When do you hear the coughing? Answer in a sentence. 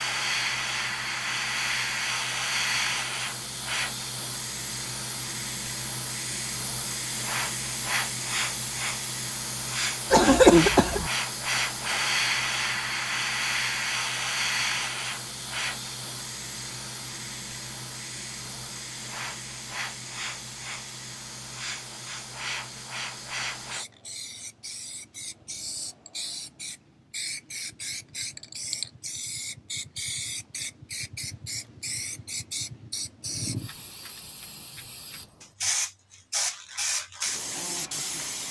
The coughing can be heard from 10.1 to 11.1 s.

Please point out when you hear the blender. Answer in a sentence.
You can't hear the blender here.